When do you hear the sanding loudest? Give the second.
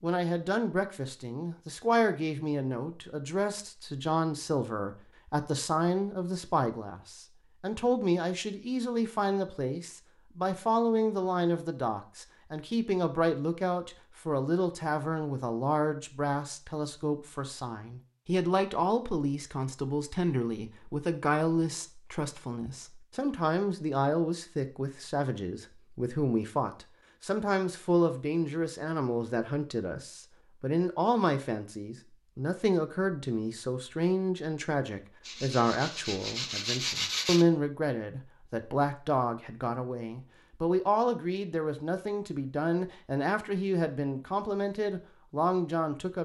37 s.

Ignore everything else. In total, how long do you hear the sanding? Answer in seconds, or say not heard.
2 s.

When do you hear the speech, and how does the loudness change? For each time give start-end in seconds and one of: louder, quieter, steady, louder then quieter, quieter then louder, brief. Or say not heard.
0.0-46.2 steady.